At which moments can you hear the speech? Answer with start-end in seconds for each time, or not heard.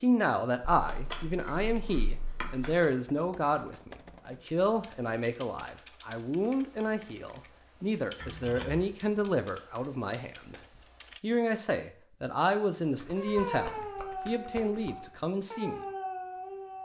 0.0-10.6, 11.2-15.8.